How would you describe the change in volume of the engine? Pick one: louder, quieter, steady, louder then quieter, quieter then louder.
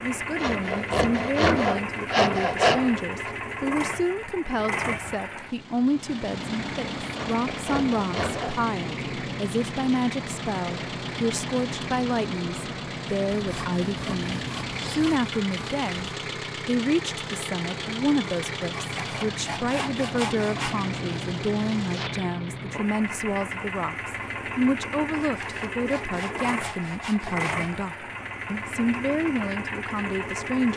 steady.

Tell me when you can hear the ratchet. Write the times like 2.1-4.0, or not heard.
not heard.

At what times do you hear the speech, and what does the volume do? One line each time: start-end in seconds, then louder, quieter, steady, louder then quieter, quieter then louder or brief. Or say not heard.
0.0-30.7 steady.